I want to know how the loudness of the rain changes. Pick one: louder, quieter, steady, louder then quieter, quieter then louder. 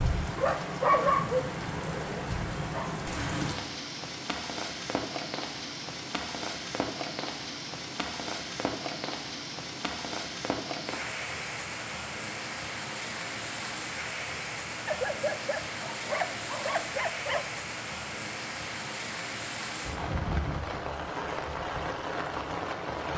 steady.